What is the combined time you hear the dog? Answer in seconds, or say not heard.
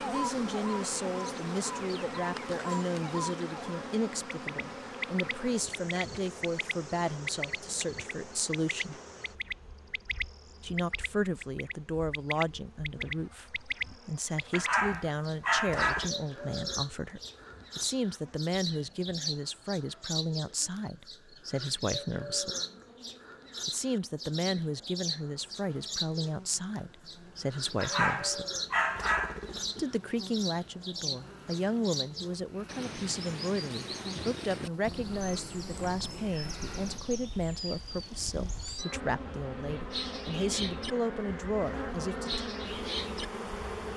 4 s.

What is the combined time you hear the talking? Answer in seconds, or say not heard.
38 s.